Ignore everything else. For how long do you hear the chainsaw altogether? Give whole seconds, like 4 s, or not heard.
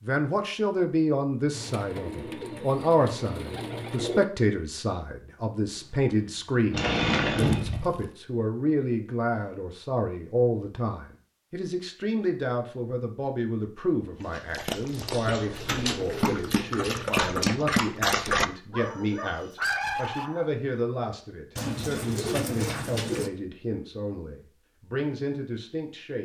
2 s.